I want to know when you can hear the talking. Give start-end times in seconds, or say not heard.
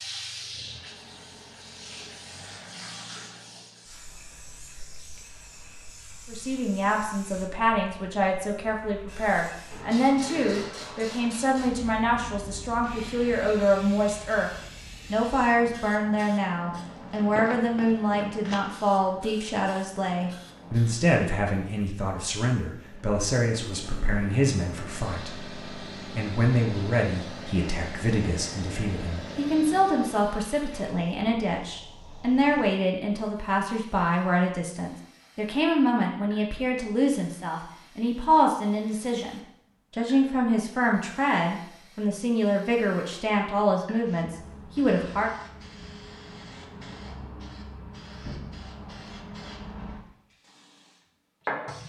6.2-14.5, 15.1-45.3.